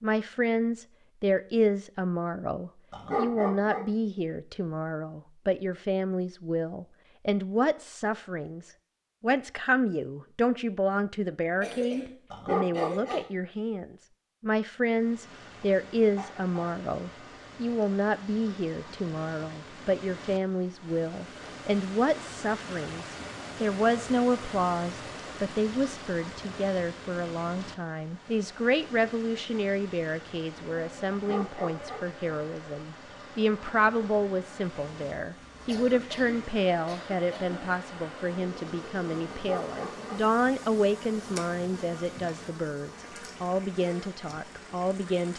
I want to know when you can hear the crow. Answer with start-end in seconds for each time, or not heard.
not heard.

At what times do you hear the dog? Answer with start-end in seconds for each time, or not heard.
2.9-3.9, 12.3-13.2, 31.1-32.0, 39.3-40.1.